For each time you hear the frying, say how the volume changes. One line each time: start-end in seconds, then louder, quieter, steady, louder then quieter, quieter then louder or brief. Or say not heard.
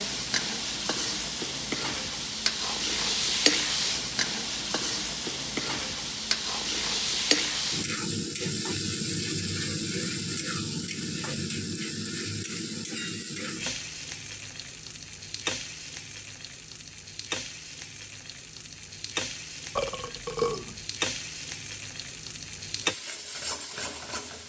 0.0-24.4 quieter.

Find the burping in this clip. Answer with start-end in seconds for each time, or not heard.
19.8-20.8.